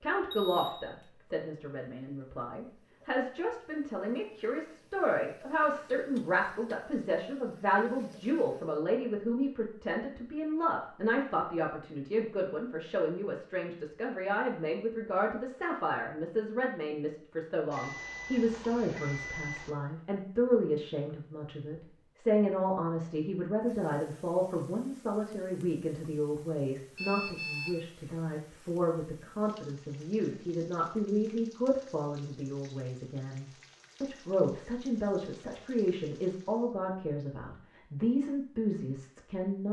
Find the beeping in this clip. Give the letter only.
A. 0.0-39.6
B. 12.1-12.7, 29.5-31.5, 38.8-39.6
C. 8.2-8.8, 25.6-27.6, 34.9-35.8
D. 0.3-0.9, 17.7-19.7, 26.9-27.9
D.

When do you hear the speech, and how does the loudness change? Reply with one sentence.
You can hear the speech from 0.0 to 39.6 s, at a steady volume.